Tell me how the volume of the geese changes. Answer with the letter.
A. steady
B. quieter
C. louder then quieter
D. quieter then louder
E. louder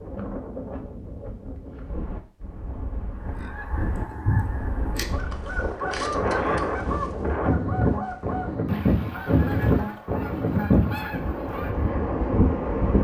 B.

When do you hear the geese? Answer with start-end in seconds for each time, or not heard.
3.3-11.9.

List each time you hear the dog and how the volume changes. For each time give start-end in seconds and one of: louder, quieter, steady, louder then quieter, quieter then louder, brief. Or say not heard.
not heard.